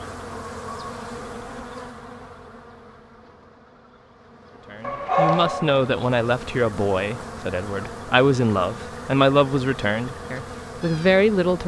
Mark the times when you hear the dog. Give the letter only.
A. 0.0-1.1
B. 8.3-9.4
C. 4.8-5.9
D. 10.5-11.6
C.